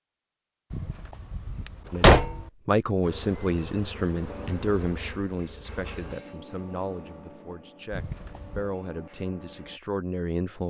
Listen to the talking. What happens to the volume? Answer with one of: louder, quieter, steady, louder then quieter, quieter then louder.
quieter then louder.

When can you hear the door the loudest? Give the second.
2 s.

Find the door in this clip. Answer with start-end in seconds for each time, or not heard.
0.7-2.5, 7.9-8.7.